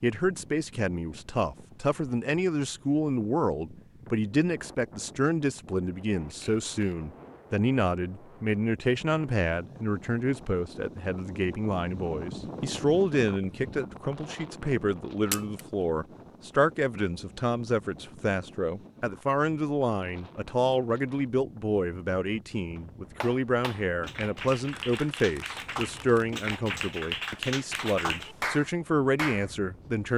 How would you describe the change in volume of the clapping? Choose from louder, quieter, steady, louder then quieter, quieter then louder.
louder.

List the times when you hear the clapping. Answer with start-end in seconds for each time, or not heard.
22.6-29.5.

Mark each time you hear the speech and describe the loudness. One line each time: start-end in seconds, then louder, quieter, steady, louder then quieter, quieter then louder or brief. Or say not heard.
0.0-30.1 steady.